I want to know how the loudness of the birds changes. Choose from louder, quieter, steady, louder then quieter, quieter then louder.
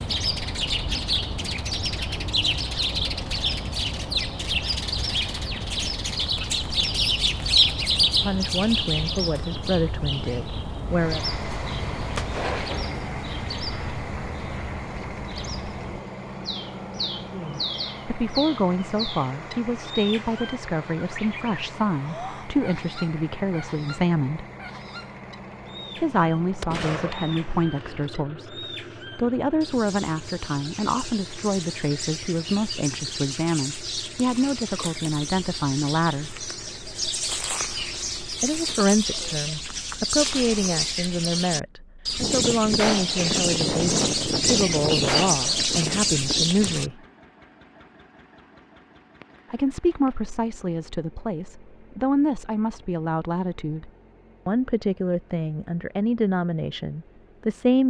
quieter then louder.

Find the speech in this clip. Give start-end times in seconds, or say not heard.
8.1-11.2, 17.3-24.4, 25.9-36.3, 38.4-47.0, 49.5-57.8.